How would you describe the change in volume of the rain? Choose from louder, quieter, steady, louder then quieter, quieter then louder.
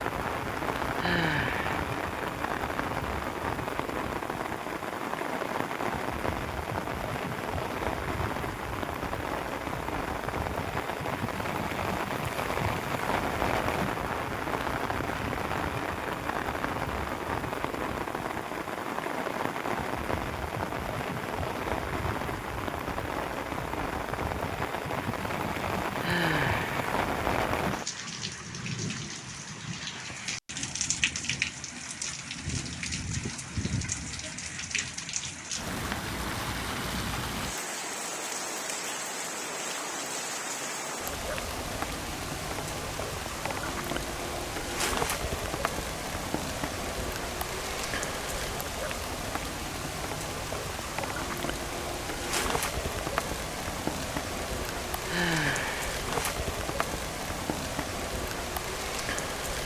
steady.